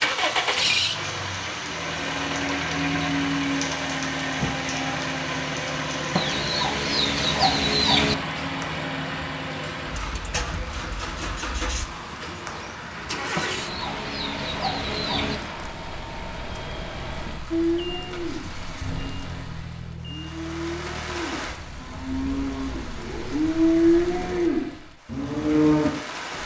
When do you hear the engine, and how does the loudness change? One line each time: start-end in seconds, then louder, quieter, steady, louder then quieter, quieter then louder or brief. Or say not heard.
0.0-24.2 quieter.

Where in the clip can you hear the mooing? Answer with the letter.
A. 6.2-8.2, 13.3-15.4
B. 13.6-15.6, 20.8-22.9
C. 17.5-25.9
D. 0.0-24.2
C.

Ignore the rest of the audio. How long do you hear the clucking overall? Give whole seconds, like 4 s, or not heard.
4 s.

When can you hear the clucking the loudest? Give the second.
8 s.